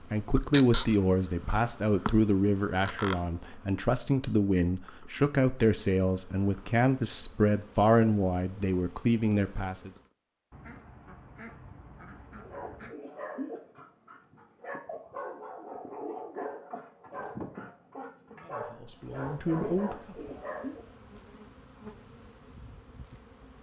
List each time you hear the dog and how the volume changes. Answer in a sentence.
The dog can be heard from 12.3 to 20.9 s, at a steady volume.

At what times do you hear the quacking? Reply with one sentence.
The quacking can be heard from 10.5 to 12.9 s.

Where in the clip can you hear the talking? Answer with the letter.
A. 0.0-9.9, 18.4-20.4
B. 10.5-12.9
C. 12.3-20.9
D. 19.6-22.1
A.